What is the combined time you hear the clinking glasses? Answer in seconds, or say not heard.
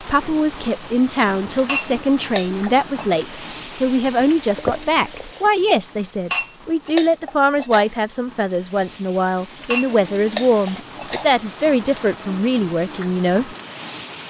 5 s.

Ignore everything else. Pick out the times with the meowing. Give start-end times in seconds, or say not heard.
4.3-5.5.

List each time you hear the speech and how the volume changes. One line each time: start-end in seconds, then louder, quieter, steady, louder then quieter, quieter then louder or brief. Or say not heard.
0.0-13.6 steady.